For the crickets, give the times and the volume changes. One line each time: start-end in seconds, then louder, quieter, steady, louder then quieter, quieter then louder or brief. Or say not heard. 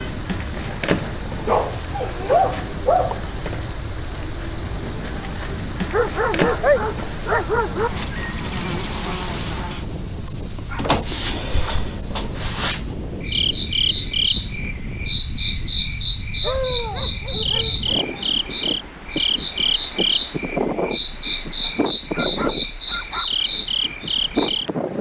0.0-24.9 steady.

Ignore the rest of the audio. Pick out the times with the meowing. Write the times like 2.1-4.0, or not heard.
not heard.